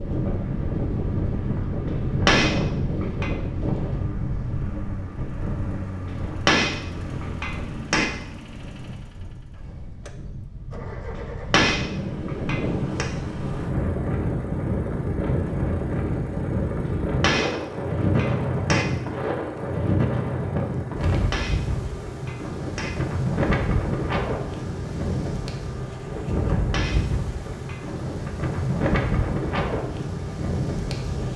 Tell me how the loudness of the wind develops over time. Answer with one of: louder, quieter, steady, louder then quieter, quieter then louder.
quieter then louder.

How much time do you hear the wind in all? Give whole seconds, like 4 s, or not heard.
31 s.